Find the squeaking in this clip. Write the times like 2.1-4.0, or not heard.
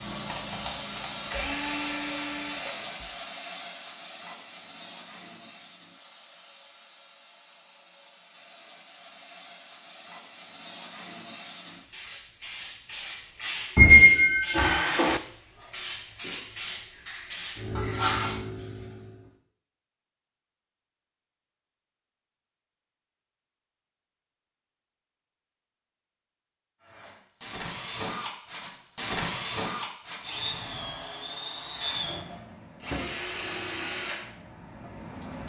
13.8-15.2.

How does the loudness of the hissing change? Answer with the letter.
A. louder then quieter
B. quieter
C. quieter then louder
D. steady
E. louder
C.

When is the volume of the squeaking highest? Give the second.
14 s.